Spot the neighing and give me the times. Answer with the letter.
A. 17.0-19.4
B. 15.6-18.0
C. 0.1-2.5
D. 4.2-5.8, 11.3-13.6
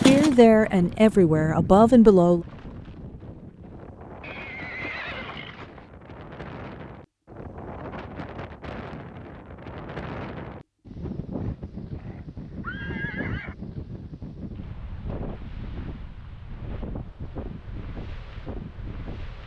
D.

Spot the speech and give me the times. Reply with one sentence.
The speech can be heard from 0.1 to 2.5 s.